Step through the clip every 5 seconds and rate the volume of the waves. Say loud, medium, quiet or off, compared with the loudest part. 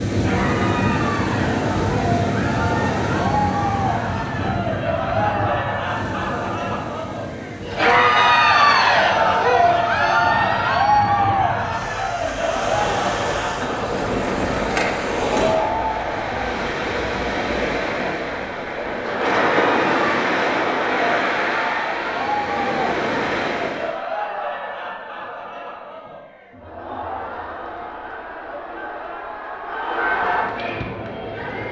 loud, medium, loud, loud, loud, off, off.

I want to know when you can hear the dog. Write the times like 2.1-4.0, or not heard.
not heard.